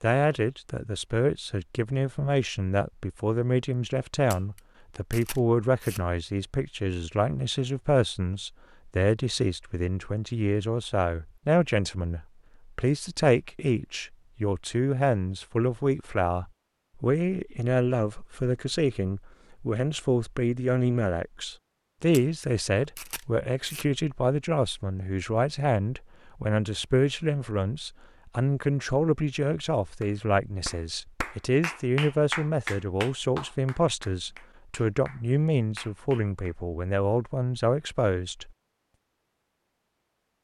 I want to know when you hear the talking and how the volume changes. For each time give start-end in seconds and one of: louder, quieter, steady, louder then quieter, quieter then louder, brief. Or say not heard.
0.0-38.5 steady.